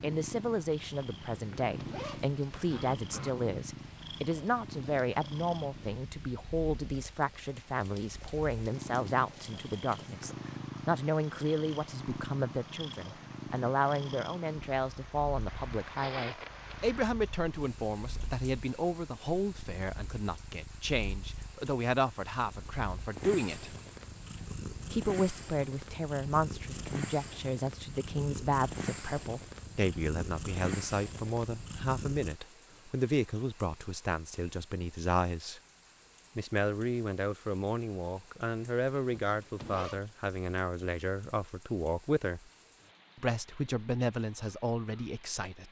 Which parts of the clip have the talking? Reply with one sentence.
You can hear the talking from 0.0 to 23.8 s, from 24.9 to 35.6 s, from 36.4 to 42.4 s and from 43.1 to 45.6 s.